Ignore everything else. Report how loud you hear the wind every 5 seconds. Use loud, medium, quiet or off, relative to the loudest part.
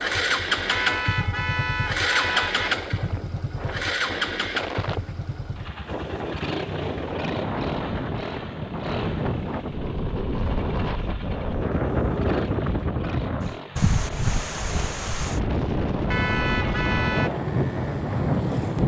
medium, medium, loud, loud.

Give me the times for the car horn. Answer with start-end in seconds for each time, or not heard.
0.7-2.7, 16.1-17.3.